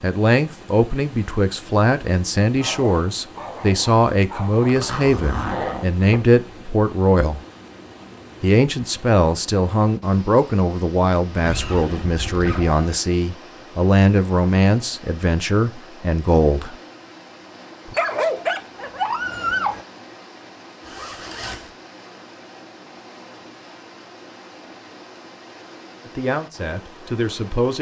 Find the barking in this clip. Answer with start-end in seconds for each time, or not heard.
2.6-5.5, 17.9-19.9.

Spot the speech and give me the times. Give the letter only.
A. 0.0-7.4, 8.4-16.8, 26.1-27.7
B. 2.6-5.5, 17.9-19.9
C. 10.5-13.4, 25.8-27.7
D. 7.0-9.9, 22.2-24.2
A.